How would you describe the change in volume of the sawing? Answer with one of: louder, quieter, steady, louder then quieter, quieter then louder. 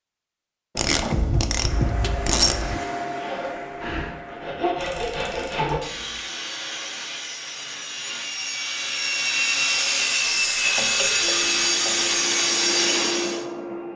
louder.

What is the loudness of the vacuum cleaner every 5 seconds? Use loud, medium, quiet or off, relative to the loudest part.
loud, off, loud.